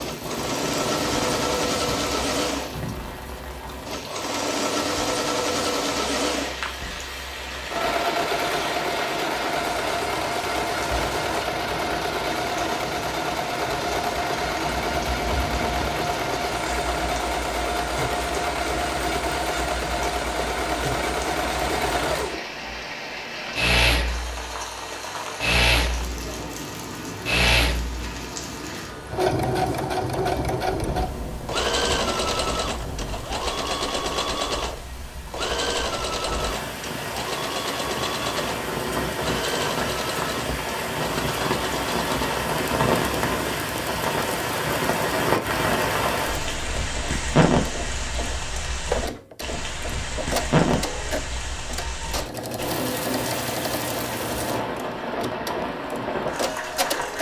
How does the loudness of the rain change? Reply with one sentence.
The volume of the rain goes up.